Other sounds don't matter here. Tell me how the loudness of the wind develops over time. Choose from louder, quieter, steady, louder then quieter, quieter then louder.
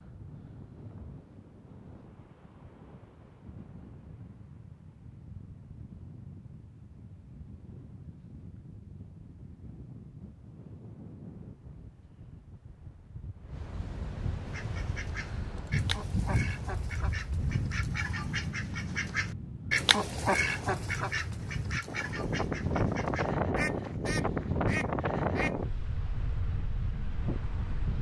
louder.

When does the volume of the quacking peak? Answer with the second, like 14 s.
20 s.